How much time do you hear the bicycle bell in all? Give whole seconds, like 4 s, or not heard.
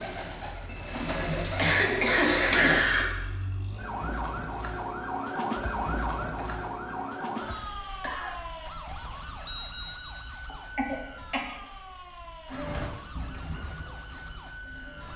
2 s.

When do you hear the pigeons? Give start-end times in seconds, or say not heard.
0.0-2.9, 12.5-15.1.